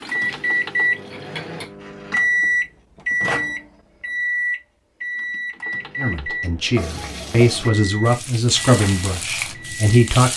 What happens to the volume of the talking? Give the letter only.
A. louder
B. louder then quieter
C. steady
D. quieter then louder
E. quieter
B.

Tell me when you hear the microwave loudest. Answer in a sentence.
The volume of the microwave peaks at 3 seconds.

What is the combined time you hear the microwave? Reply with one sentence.
The microwave can be heard for 10 seconds in total.